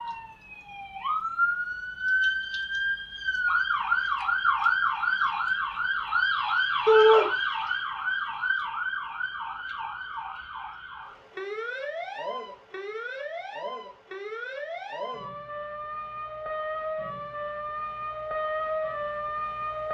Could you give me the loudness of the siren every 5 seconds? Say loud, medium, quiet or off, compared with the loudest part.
loud, loud, medium, medium.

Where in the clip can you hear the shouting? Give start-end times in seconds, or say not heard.
6.8-7.2.